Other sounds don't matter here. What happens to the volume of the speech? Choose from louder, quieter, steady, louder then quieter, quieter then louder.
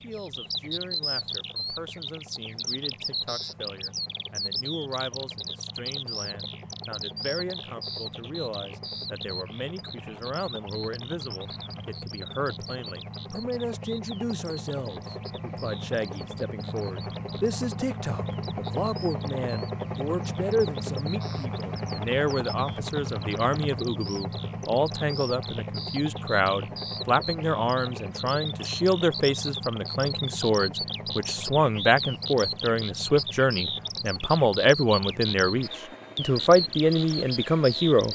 louder.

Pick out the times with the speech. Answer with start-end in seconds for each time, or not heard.
0.0-38.1.